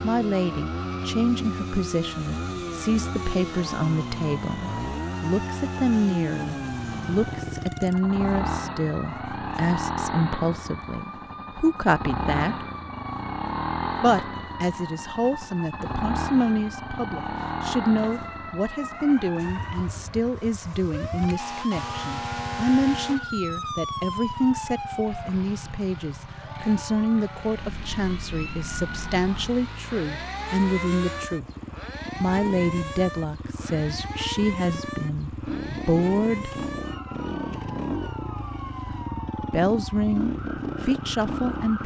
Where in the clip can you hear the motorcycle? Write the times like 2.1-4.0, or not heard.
0.0-41.8.